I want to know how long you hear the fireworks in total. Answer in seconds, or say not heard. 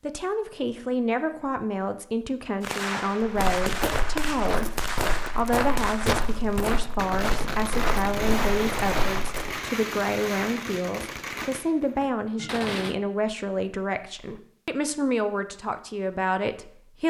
10 s.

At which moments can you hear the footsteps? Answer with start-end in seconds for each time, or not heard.
3.2-9.6.